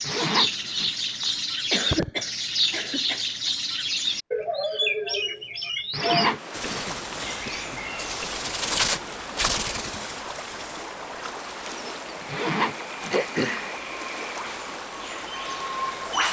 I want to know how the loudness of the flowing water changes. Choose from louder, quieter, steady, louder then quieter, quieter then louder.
steady.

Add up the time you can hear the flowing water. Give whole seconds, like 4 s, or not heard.
10 s.